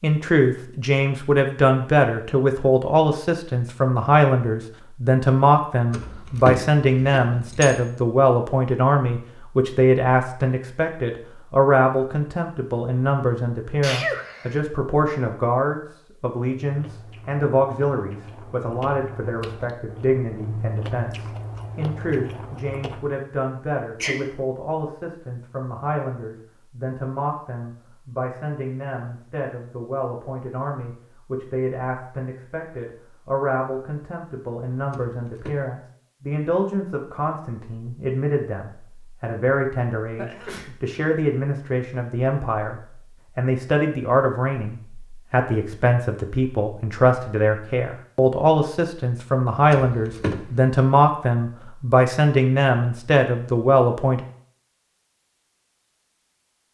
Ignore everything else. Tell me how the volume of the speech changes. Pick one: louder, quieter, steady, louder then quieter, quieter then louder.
quieter then louder.